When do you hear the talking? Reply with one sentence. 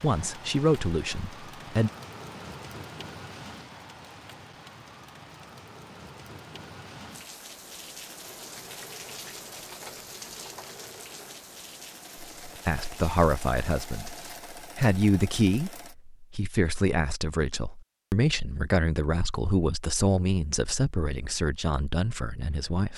The talking can be heard from 0.0 to 1.9 s and from 12.4 to 22.9 s.